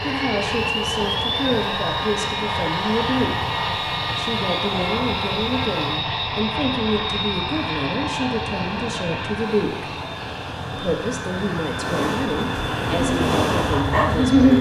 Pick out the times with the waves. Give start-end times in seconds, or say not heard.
0.0-14.3.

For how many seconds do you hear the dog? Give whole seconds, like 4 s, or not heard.
2 s.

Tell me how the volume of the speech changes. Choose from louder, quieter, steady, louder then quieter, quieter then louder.
steady.